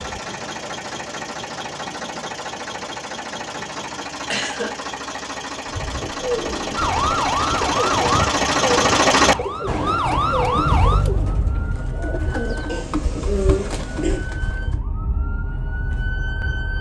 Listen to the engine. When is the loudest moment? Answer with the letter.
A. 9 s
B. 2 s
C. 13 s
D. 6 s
A.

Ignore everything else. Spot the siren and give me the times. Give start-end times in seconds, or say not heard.
6.8-16.7.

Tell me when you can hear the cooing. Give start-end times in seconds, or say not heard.
5.6-14.8.